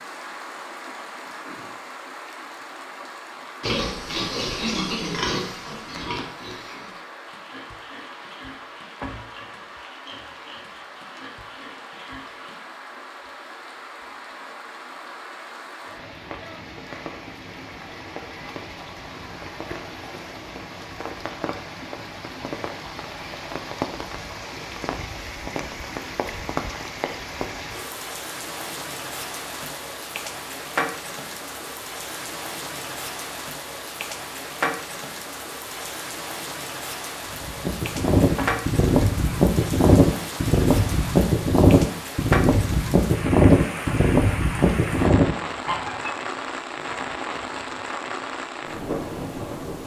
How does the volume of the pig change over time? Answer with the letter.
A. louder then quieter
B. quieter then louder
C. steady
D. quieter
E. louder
D.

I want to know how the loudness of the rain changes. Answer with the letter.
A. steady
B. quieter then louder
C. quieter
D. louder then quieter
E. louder
E.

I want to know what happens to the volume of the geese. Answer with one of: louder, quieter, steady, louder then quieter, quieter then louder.
steady.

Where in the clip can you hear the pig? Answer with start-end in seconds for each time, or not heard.
3.6-12.8.